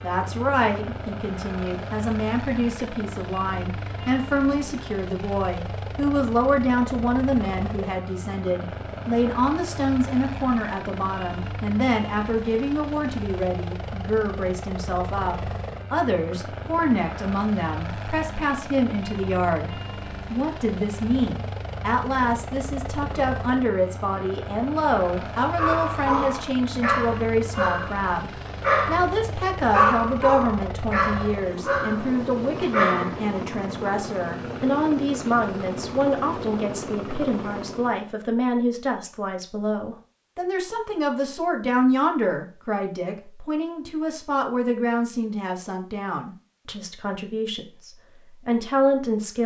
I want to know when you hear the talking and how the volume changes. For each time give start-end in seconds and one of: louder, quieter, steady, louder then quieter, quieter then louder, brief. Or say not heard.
0.0-49.4 steady.